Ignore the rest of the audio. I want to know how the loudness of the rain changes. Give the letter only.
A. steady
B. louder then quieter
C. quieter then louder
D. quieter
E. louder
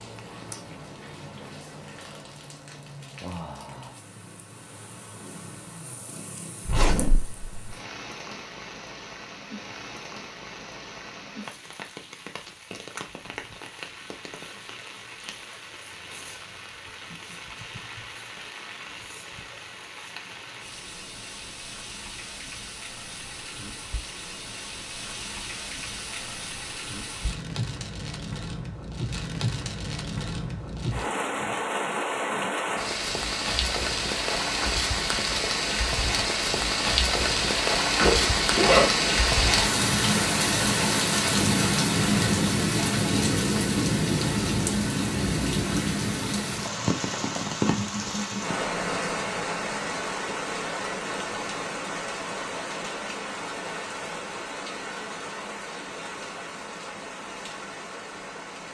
B.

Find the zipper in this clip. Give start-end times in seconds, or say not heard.
6.7-7.7, 38.0-39.1.